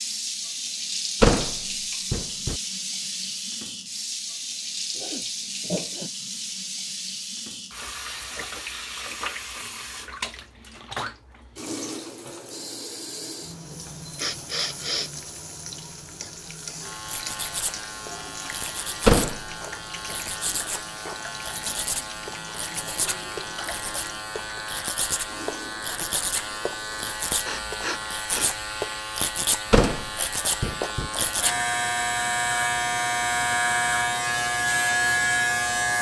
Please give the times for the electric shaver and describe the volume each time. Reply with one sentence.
You can hear the electric shaver from 16.8 to 35.9 s, getting louder.